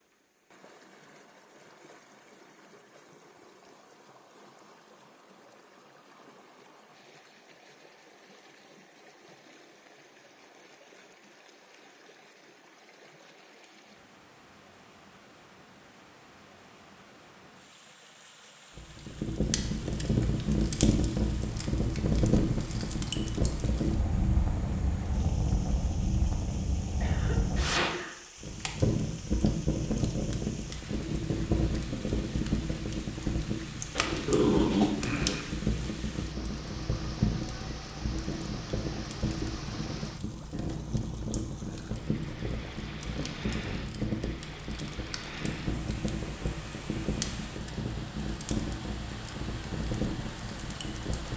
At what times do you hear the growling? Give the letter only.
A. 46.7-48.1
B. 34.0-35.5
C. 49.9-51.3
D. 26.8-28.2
B.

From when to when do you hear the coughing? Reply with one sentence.
You can hear the coughing from 26.8 to 28.2 s.